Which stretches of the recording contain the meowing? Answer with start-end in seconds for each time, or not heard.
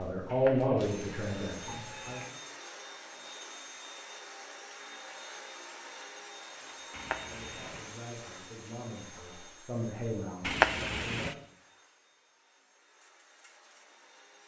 0.2-2.3, 6.9-7.8, 10.4-11.3.